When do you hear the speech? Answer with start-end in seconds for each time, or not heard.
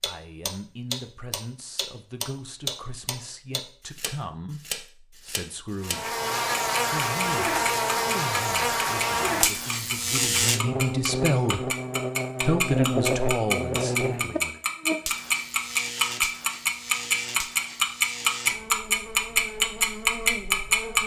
0.0-6.2, 6.8-11.7, 12.4-14.6.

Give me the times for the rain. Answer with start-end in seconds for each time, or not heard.
not heard.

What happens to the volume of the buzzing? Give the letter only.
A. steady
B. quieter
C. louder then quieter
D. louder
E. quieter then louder
B.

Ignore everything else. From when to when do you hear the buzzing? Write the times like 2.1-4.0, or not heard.
5.8-21.0.